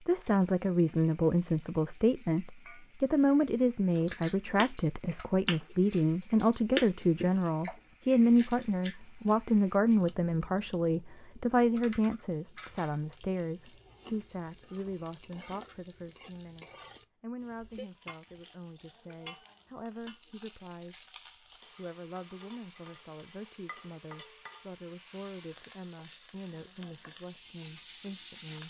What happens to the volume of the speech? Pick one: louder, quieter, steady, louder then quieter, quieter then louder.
quieter.